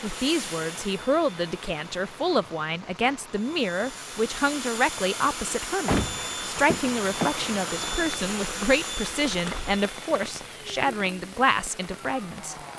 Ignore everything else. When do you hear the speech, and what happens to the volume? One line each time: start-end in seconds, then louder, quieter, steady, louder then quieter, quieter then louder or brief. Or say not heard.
0.0-12.6 steady.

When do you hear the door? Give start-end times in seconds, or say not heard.
5.8-7.5.